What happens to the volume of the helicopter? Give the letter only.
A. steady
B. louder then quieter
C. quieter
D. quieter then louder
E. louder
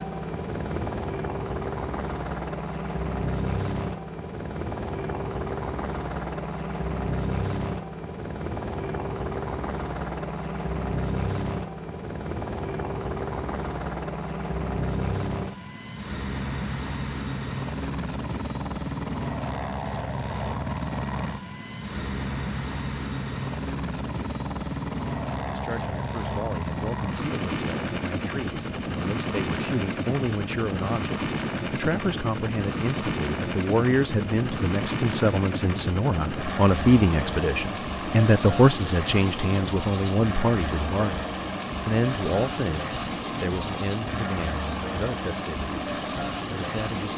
A.